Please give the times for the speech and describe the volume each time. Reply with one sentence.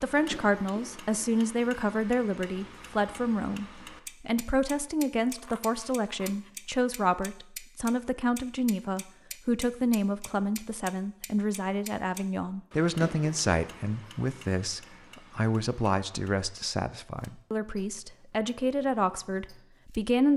The speech can be heard from 0.0 to 20.3 s, at a steady volume.